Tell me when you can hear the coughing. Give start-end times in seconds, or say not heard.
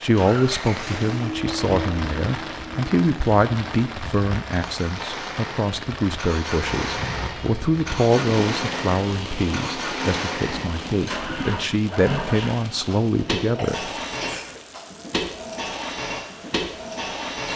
13.6-14.6.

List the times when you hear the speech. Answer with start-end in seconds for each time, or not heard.
0.0-13.8.